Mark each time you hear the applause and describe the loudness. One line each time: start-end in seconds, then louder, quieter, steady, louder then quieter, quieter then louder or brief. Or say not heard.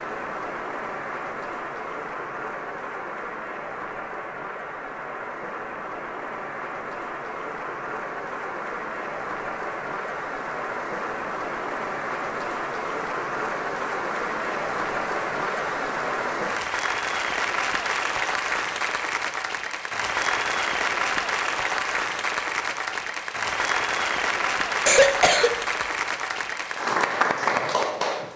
0.0-28.3 louder.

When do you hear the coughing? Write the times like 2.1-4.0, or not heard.
24.9-25.5.